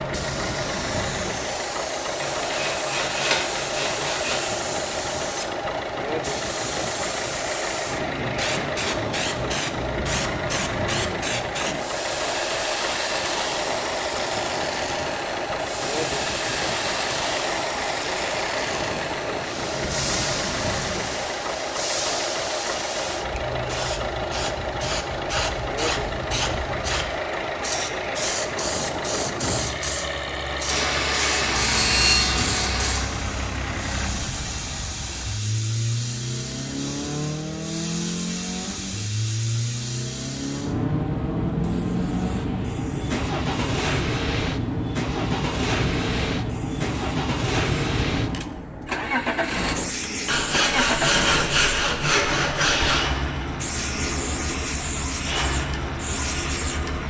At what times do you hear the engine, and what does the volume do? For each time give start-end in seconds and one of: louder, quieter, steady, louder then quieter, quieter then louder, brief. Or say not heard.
0.0-57.0 steady.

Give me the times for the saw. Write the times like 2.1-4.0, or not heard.
2.2-4.5, 30.6-33.0, 50.2-53.0.